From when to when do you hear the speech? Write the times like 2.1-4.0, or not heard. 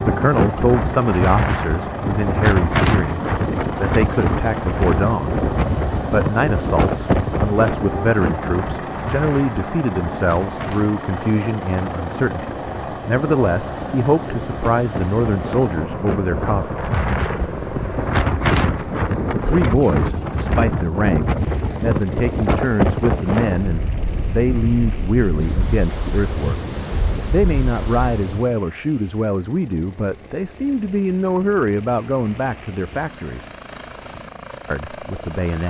0.0-5.4, 6.1-16.8, 19.4-26.6, 27.3-33.5, 34.7-35.6.